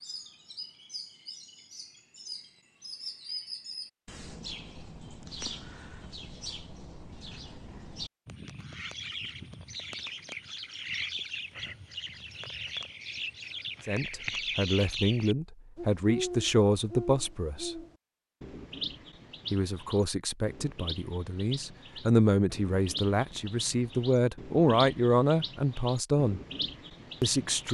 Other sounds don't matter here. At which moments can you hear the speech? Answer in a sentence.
The speech can be heard from 13.8 to 17.8 s, from 19.5 to 26.4 s and from 27.2 to 27.6 s.